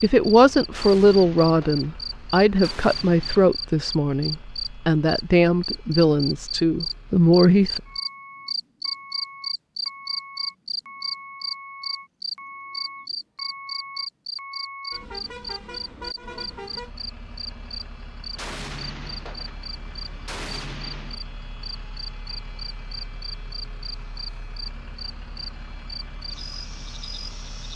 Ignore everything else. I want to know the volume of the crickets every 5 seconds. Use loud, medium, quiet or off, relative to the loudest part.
loud, loud, loud, medium, medium, medium.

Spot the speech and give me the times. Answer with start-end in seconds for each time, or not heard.
0.0-7.8.